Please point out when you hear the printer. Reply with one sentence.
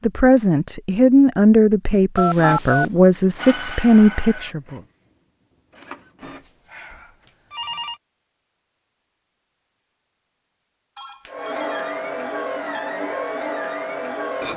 The printer can be heard from 2.4 to 6.6 s and from 11.2 to 14.5 s.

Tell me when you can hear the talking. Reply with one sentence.
The talking can be heard from 0.0 to 4.8 s.